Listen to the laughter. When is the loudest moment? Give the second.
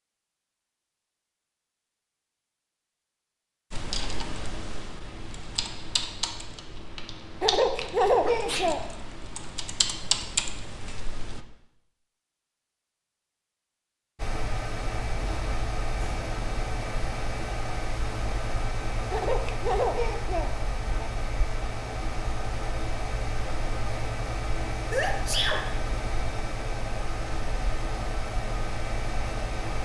8 s.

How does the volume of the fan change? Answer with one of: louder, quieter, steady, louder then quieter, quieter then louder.
steady.